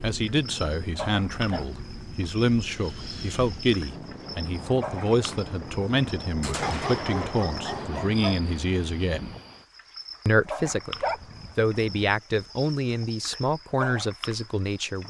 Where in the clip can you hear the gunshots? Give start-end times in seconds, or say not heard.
6.4-7.9.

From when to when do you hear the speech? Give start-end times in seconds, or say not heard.
0.0-9.3, 10.2-10.9, 11.6-15.0.